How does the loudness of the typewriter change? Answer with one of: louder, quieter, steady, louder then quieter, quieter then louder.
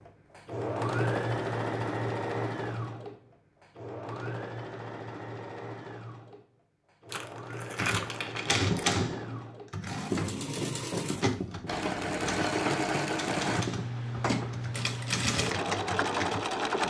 quieter.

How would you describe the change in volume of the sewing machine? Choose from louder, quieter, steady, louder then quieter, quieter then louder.
quieter then louder.